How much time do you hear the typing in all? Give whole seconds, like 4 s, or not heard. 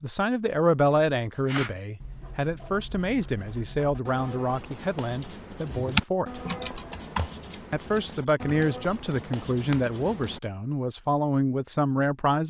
5 s.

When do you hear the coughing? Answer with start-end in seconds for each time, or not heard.
not heard.